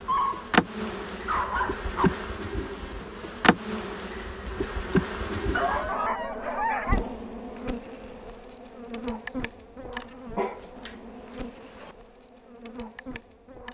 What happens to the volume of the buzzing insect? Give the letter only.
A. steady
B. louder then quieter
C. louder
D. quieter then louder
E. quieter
E.